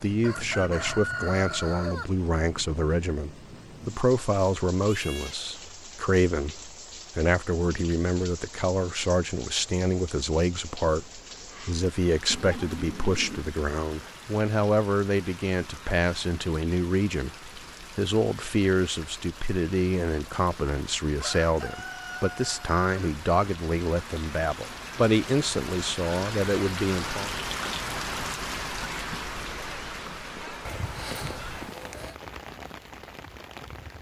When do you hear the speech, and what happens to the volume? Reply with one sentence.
You can hear the speech from 0.0 to 27.3 s, at a steady volume.